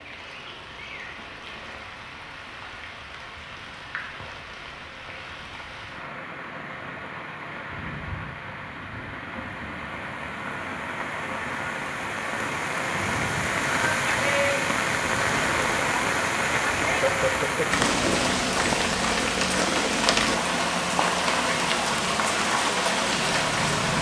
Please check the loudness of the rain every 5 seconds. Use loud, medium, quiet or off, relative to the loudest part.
quiet, quiet, loud, loud, loud.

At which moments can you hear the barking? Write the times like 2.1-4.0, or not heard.
not heard.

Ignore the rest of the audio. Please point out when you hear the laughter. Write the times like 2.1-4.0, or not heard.
16.9-17.7.